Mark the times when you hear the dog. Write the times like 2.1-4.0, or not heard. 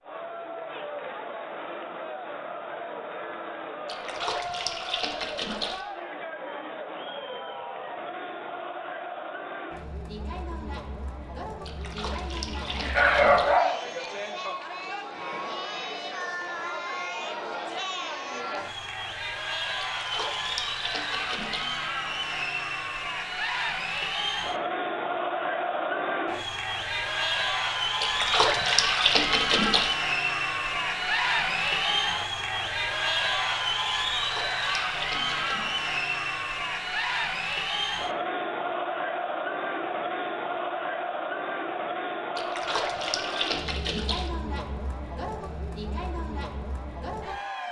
12.7-13.8.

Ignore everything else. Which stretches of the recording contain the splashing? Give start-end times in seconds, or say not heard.
3.9-5.8, 11.7-13.5, 19.9-21.8, 28.0-29.9, 34.1-35.6, 42.4-44.3.